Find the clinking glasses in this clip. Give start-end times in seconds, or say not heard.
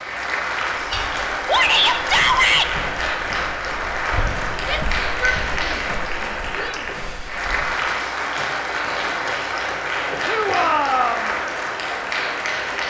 not heard.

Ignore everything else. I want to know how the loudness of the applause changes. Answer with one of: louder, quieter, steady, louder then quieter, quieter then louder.
steady.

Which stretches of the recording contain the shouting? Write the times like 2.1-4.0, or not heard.
1.4-2.7, 4.6-6.8, 10.2-11.3.